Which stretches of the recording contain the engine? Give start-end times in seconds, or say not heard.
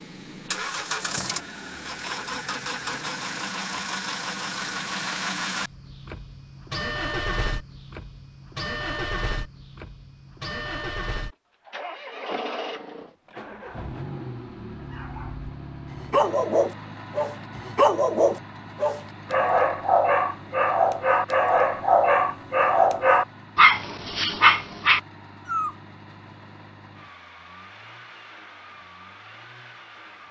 0.0-30.2.